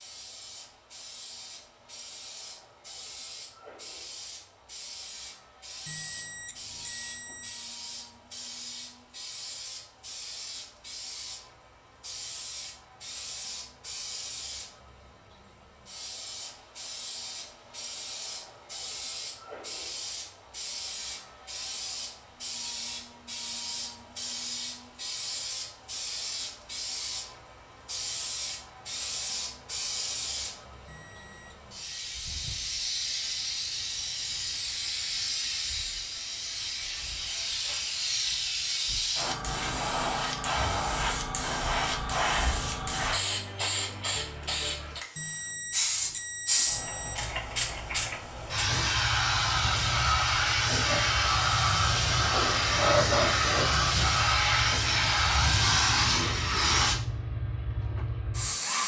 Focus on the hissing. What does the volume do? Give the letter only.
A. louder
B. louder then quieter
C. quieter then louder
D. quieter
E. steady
A.